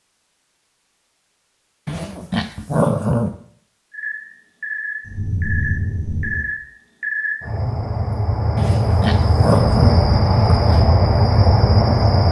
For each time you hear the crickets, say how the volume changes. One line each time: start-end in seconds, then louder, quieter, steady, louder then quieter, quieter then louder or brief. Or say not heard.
3.9-12.2 louder.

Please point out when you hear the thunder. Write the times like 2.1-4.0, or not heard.
5.0-6.5.